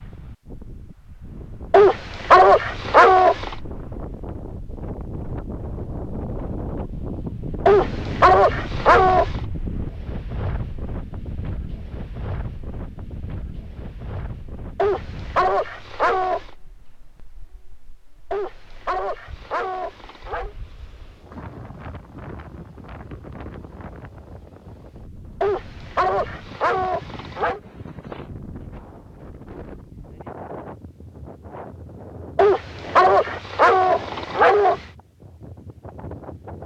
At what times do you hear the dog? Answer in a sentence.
You can hear the dog from 1.7 to 3.5 s, from 7.7 to 9.4 s, from 14.8 to 16.5 s, from 18.3 to 20.6 s, from 25.4 to 27.6 s and from 32.4 to 34.9 s.